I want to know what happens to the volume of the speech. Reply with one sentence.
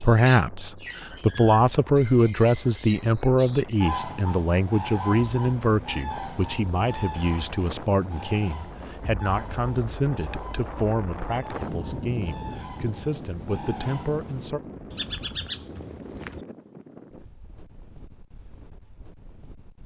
The loudness of the speech goes down.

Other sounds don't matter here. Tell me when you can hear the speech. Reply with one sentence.
You can hear the speech from 0.0 to 14.6 s.